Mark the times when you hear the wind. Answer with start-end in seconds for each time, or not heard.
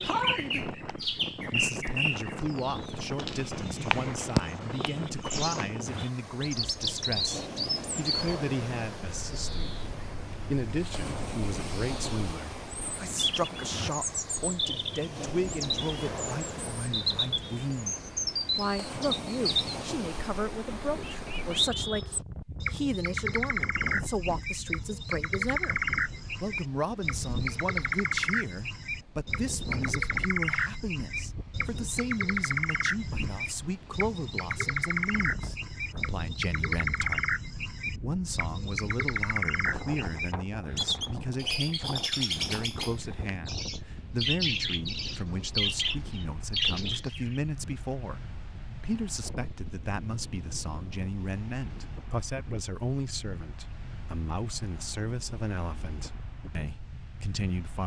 0.0-57.8.